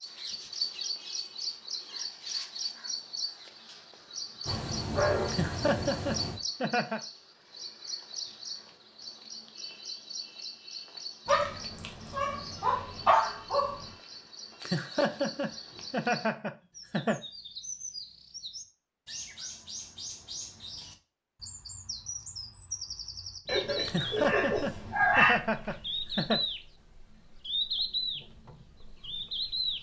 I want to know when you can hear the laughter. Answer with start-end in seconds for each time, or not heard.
5.2-7.0, 14.6-17.2, 23.9-26.4.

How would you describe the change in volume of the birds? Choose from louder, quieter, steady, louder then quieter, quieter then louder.
quieter then louder.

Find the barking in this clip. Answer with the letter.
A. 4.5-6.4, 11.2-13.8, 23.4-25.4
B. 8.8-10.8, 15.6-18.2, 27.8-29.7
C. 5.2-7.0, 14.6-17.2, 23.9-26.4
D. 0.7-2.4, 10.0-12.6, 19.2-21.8
A.